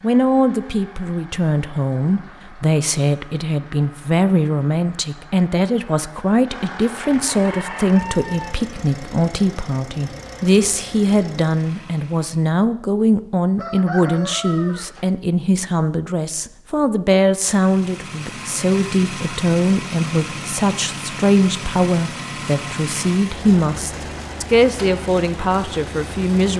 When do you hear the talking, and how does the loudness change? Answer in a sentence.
The talking can be heard from 0.0 to 26.5 s, at a steady volume.